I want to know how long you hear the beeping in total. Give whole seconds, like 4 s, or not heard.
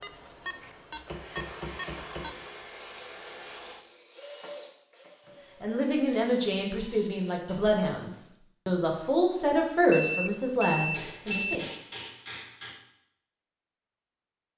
6 s.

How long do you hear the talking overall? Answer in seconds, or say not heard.
6 s.